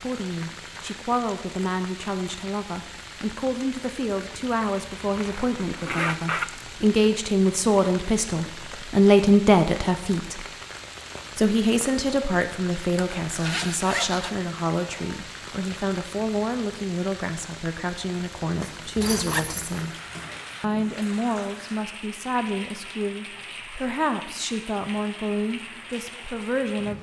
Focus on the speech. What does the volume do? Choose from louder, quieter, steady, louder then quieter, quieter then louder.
louder then quieter.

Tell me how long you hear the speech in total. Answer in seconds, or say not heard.
25 s.